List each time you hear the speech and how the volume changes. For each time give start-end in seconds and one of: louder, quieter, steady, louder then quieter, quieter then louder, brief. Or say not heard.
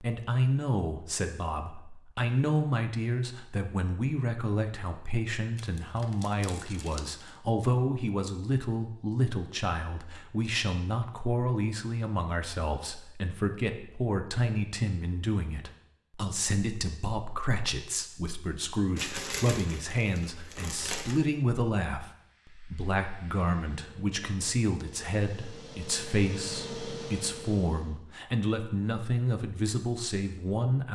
0.0-30.9 steady.